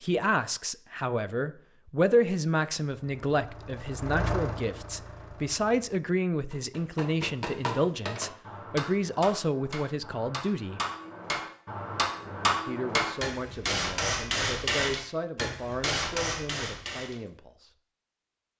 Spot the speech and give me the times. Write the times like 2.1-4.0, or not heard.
0.0-10.8, 12.7-17.7.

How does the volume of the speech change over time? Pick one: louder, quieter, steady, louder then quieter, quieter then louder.
quieter.